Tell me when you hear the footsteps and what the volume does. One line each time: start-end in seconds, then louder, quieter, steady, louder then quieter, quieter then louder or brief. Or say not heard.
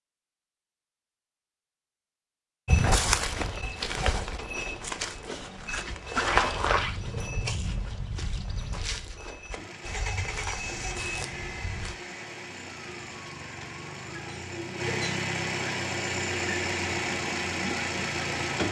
2.6-11.9 quieter.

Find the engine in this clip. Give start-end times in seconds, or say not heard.
9.5-18.6.